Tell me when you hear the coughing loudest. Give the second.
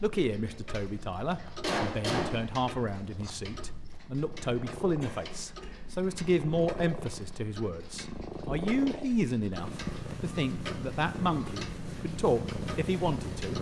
2 s.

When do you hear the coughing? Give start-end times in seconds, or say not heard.
1.3-2.2, 5.0-6.0, 9.7-11.6.